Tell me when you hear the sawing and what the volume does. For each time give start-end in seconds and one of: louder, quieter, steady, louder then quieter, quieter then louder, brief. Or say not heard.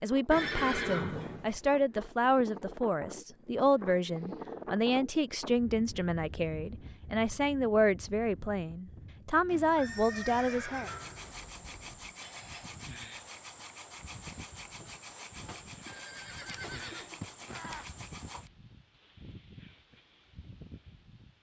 10.8-18.5 steady.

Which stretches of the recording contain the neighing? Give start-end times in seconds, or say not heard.
0.3-1.9, 9.4-11.4, 15.8-17.9.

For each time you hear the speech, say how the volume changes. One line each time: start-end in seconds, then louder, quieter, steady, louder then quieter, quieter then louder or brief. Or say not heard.
0.0-10.9 steady.